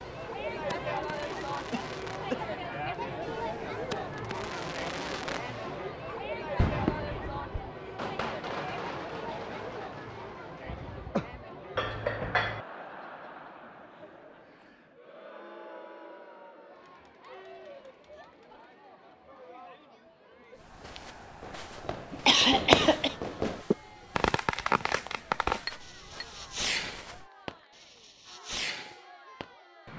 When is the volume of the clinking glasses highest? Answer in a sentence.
The volume of the clinking glasses peaks at 12 seconds.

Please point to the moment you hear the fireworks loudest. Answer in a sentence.
The volume of the fireworks peaks at 23 seconds.